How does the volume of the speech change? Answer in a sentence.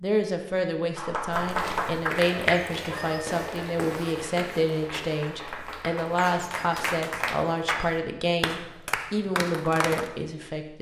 The loudness of the speech stays about the same.